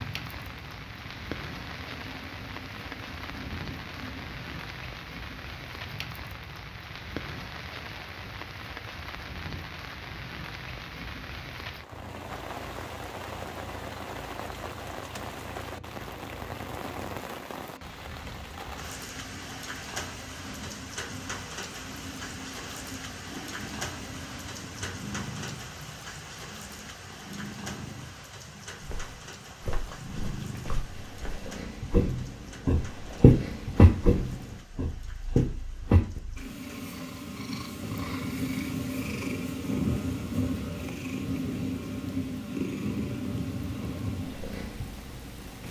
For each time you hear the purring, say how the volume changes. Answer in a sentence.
You can hear the purring from 0.2 to 4.6 s, getting louder; and from 11.9 to 45.6 s, getting louder.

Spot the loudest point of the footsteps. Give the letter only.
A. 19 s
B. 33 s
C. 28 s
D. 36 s
B.